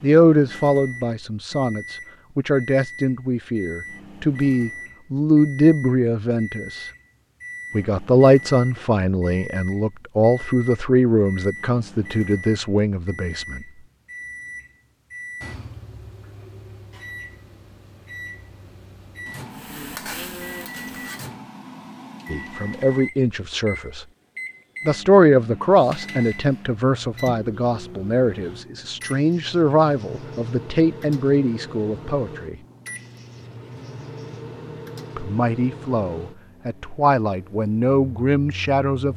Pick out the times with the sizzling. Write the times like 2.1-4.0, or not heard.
19.5-21.3.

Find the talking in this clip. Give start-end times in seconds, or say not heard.
0.0-6.8, 7.7-13.7, 22.3-24.1, 24.9-32.5, 35.1-39.1.